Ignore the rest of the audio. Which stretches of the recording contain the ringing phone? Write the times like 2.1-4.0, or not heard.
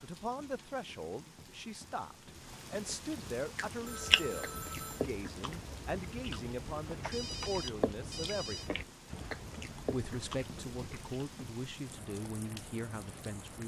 3.9-5.1, 7.1-8.7.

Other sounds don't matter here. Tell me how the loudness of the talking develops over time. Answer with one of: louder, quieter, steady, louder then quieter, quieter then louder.
steady.